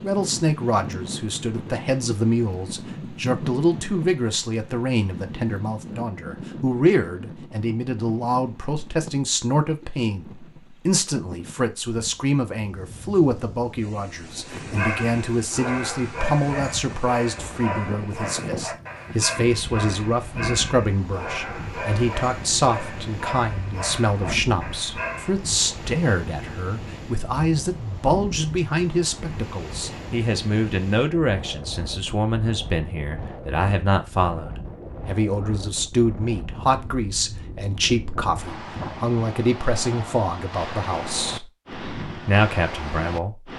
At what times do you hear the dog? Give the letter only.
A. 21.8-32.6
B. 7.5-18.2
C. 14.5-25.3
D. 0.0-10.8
C.